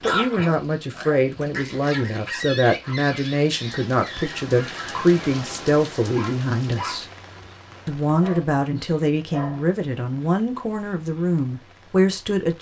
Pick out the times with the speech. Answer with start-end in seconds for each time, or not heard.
0.0-7.0, 7.8-12.5.